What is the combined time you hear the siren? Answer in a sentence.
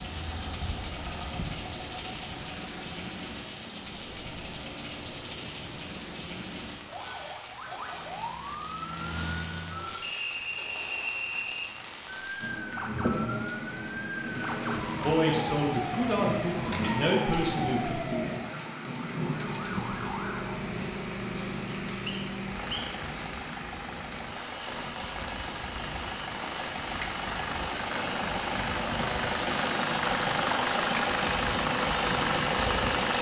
You can hear the siren for 12 seconds altogether.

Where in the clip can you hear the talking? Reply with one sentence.
The talking can be heard from 15.0 to 17.9 s.